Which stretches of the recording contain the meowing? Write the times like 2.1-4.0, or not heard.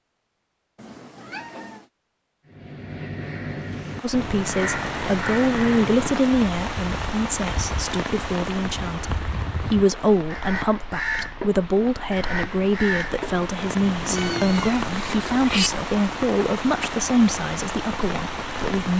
0.8-1.9, 14.2-15.7.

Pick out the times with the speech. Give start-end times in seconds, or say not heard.
4.0-18.9.